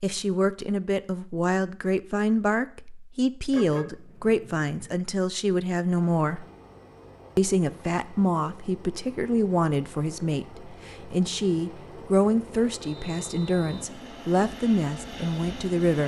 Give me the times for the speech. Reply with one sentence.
The speech can be heard from 0.0 to 6.5 s and from 7.3 to 16.0 s.